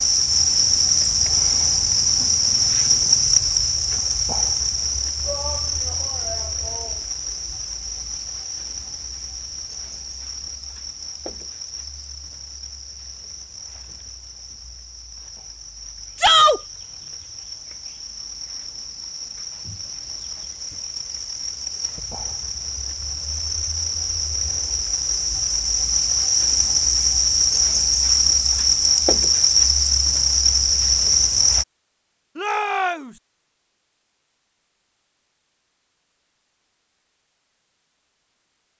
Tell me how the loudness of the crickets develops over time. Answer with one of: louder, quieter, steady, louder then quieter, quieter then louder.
quieter then louder.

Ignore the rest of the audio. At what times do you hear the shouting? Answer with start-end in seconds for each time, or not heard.
5.2-7.0, 16.1-16.6, 32.4-33.1.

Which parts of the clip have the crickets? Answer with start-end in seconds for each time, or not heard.
0.0-31.6.